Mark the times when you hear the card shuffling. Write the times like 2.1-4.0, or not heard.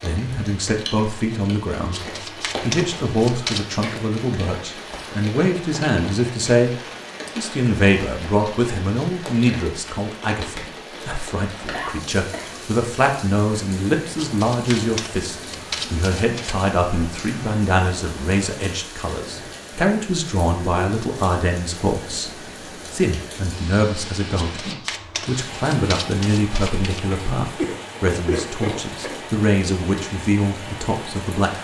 1.9-3.7, 14.2-16.7, 24.4-27.0.